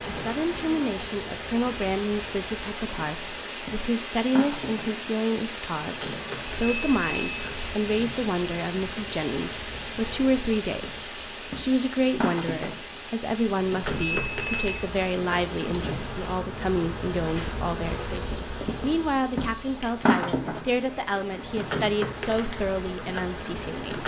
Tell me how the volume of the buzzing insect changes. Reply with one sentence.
The loudness of the buzzing insect goes up.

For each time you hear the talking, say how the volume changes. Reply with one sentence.
You can hear the talking from 0.1 to 24.0 s, at a steady volume.